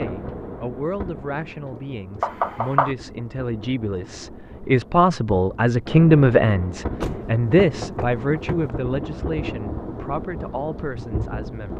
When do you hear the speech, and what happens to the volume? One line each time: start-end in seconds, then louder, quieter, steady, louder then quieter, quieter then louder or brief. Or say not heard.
0.0-11.7 louder then quieter.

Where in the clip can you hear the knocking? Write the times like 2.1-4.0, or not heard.
2.2-3.0, 7.0-8.8.